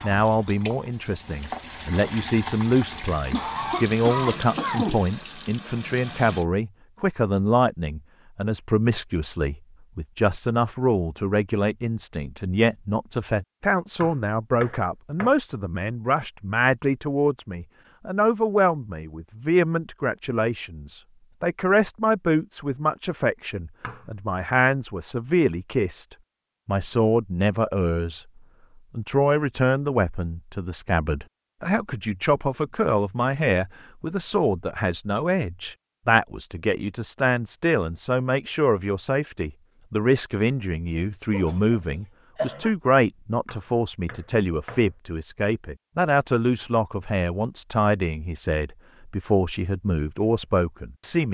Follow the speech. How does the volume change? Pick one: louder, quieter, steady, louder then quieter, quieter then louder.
steady.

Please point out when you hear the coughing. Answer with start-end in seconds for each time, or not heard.
3.3-5.0, 41.3-42.7.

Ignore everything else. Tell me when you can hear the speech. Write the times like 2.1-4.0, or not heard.
0.0-28.2, 28.9-51.2.